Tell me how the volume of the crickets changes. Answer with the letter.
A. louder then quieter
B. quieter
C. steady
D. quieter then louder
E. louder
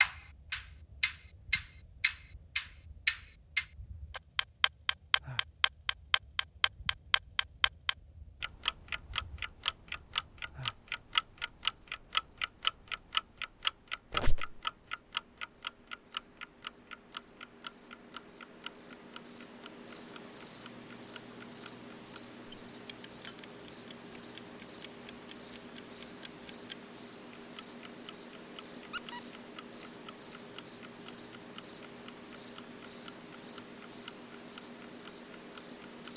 E.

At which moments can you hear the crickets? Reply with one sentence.
The crickets can be heard from 0.0 to 36.1 s.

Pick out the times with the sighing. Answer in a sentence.
The sighing can't be heard in this clip.